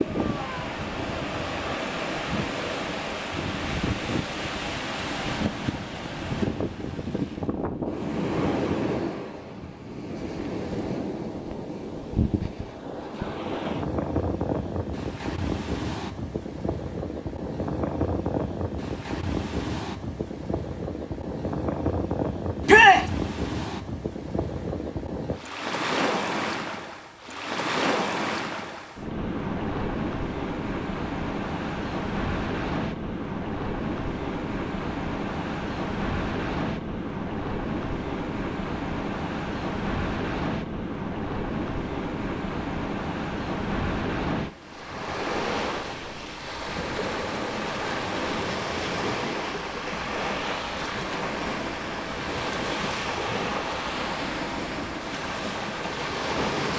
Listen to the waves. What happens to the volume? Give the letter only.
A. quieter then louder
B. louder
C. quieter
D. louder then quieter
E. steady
E.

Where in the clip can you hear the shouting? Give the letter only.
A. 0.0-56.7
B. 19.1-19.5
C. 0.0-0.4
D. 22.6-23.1
D.